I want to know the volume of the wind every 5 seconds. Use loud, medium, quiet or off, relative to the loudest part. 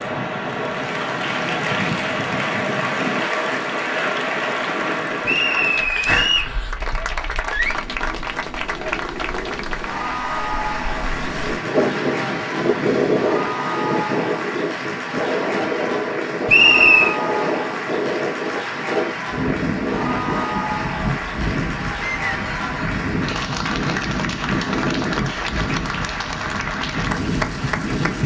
loud, medium, loud, loud, loud, loud.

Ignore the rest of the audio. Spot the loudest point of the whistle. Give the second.
17 s.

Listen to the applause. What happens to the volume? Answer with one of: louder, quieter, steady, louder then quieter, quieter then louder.
steady.